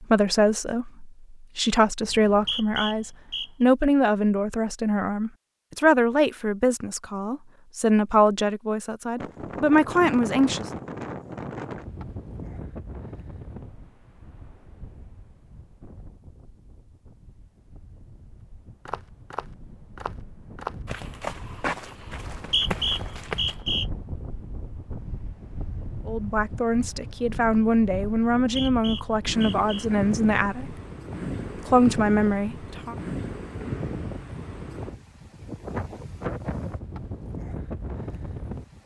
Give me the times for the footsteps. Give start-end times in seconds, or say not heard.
18.9-23.6.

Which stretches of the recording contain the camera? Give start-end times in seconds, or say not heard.
not heard.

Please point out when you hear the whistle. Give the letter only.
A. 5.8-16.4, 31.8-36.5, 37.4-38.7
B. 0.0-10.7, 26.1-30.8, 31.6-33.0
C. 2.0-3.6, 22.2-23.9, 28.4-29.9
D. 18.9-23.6
C.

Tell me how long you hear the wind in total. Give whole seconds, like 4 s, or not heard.
30 s.